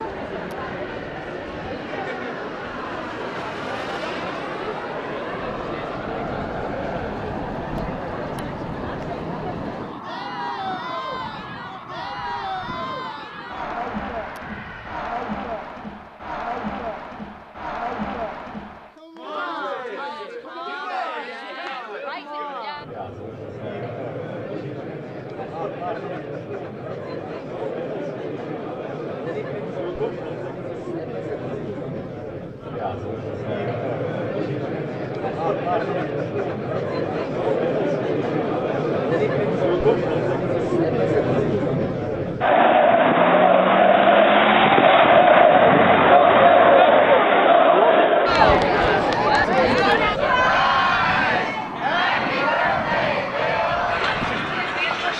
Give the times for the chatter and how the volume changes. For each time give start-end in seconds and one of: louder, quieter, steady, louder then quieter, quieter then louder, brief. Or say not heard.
0.0-55.1 louder.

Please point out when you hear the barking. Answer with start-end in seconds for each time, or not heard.
not heard.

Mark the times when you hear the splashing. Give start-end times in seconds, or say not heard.
not heard.